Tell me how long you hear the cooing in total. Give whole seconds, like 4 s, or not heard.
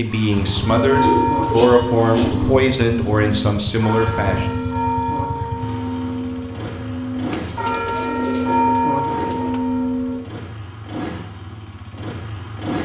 4 s.